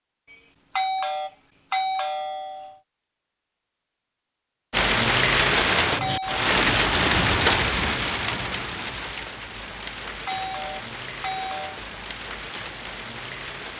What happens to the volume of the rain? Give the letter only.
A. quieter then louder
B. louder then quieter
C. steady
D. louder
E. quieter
E.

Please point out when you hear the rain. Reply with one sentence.
The rain can be heard from 4.7 to 13.7 s.